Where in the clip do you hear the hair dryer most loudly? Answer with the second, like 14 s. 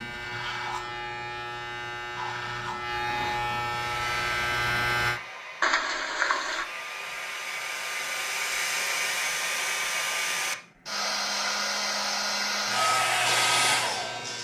13 s.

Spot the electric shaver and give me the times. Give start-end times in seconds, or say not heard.
0.0-5.2, 12.6-14.3.